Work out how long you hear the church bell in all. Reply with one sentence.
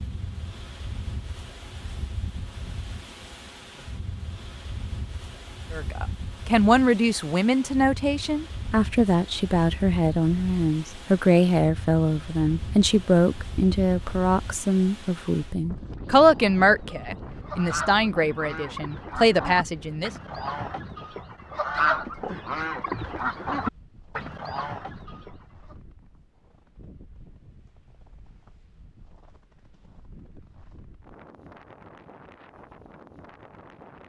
The church bell can't be heard in this clip.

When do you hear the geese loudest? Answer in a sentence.
The volume of the geese peaks at 22 seconds.